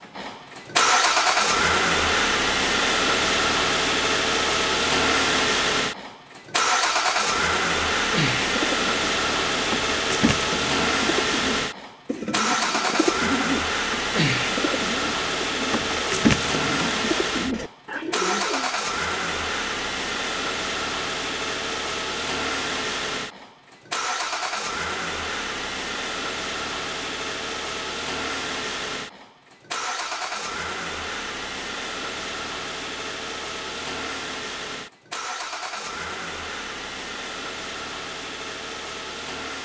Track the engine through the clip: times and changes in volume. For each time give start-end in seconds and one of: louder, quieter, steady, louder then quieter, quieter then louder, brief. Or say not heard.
0.0-39.6 quieter.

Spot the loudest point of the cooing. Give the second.
16 s.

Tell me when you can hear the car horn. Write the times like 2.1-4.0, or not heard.
not heard.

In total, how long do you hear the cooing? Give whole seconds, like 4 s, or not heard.
11 s.